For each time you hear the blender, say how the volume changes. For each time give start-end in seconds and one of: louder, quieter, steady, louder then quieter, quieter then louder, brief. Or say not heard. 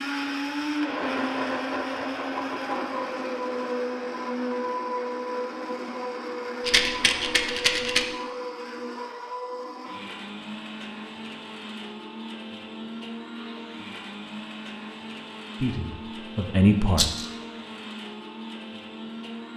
0.0-19.5 quieter.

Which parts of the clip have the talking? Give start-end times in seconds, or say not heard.
15.6-17.1.